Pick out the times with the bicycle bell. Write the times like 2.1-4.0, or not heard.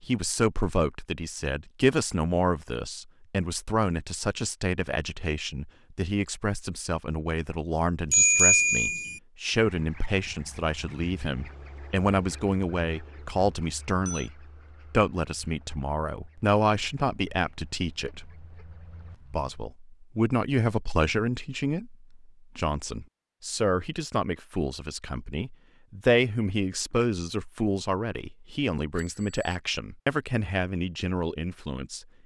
8.1-9.2, 13.6-14.3, 28.9-29.6.